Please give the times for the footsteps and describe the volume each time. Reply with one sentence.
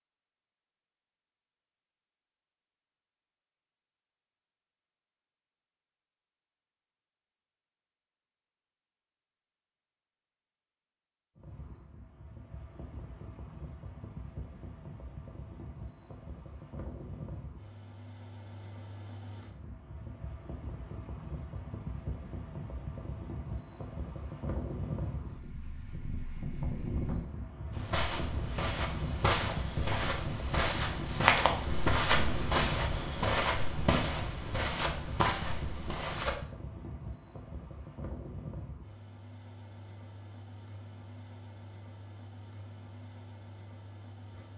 The footsteps can be heard from 27.7 to 36.4 s, getting louder then quieter.